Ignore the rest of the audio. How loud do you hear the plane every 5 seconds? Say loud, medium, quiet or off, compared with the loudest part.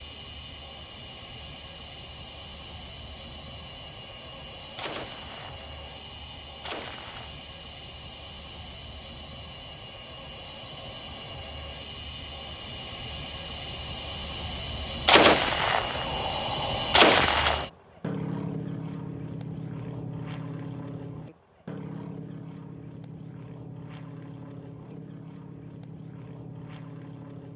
medium, medium, medium, loud, medium, medium.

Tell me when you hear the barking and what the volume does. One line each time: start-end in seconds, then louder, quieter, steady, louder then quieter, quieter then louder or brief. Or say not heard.
not heard.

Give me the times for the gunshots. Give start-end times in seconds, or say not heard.
4.8-7.3, 15.1-17.6.